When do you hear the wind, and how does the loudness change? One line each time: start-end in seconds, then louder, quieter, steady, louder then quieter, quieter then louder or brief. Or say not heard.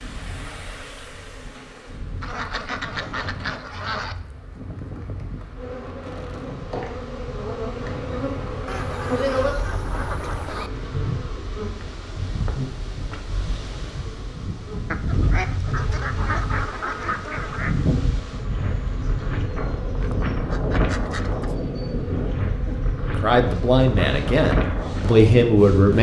0.0-25.9 louder.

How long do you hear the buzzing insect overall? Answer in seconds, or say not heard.
26 s.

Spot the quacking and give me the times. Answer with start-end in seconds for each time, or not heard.
2.2-4.2, 8.7-10.7, 14.9-17.9, 20.0-21.6.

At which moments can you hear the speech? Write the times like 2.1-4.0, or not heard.
22.6-25.9.